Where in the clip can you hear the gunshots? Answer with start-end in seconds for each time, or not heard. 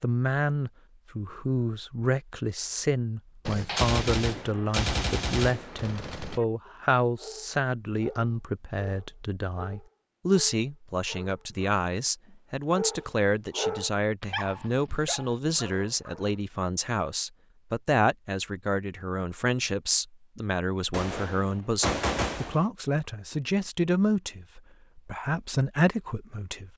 3.5-6.4, 20.9-22.6.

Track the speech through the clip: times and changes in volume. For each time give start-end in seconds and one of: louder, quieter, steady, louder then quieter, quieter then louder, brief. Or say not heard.
0.0-26.7 steady.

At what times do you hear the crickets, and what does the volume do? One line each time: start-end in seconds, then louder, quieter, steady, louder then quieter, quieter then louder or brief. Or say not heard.
not heard.